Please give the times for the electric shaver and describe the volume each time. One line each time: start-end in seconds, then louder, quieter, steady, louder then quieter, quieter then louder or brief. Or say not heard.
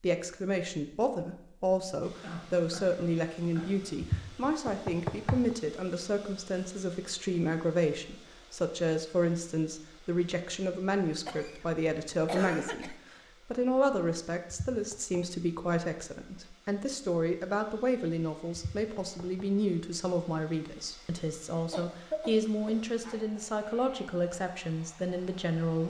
not heard.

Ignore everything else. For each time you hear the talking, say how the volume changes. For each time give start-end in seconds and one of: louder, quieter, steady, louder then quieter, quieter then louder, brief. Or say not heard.
0.0-25.8 steady.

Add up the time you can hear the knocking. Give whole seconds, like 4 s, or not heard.
3 s.